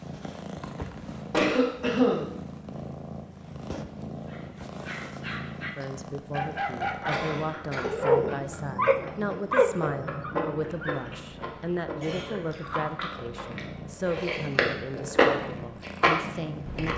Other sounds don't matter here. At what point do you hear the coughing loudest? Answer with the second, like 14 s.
2 s.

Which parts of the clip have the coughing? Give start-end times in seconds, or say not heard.
1.3-2.3, 7.1-8.1, 12.0-12.8.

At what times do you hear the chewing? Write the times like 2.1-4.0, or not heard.
7.1-16.9.